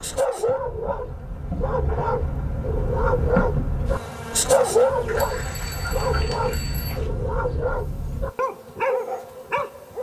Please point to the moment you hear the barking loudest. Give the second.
5 s.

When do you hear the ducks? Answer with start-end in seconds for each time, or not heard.
5.0-7.1.